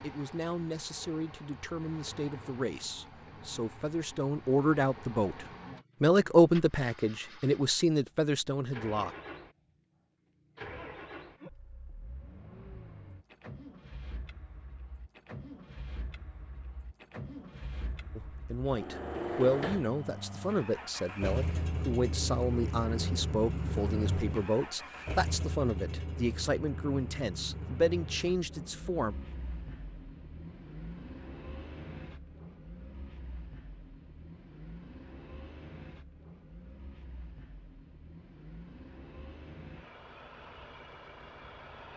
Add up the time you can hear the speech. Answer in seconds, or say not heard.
20 s.